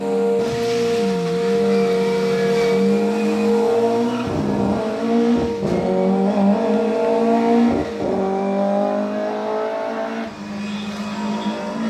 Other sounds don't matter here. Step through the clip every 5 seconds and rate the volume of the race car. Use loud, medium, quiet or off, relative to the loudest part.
loud, loud, medium.